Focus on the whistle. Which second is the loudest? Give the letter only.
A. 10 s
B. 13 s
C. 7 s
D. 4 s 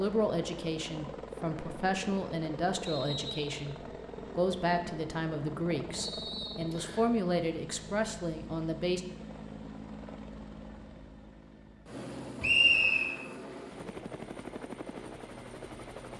B.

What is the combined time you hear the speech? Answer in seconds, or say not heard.
9 s.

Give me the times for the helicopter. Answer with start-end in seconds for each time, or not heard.
0.0-16.1.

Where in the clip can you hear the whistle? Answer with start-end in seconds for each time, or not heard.
2.9-3.6, 6.0-7.0, 12.4-13.1.